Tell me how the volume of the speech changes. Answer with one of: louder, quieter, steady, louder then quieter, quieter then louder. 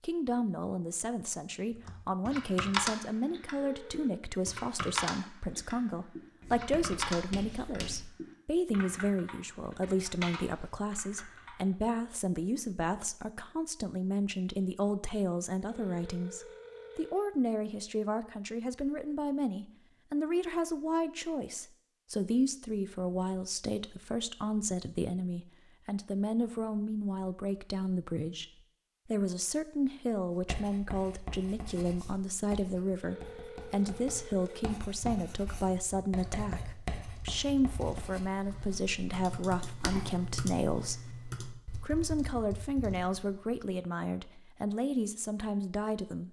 steady.